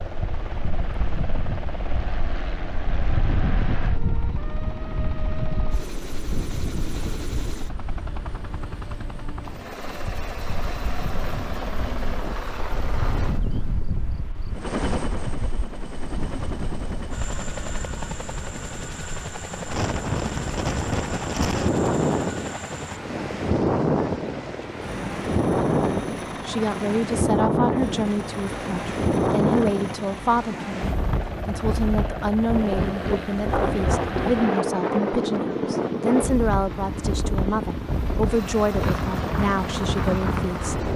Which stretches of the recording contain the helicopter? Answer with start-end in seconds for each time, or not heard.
0.0-40.9.